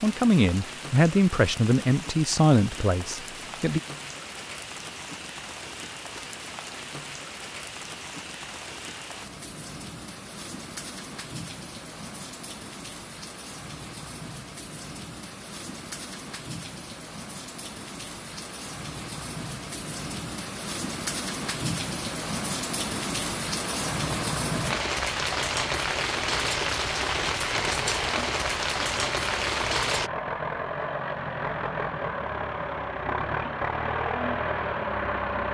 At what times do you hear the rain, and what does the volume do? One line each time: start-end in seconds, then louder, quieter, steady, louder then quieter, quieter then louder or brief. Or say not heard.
0.0-30.1 louder.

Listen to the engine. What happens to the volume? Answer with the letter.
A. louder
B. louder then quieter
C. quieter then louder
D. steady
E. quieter
A.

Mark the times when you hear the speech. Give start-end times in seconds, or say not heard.
0.0-3.8.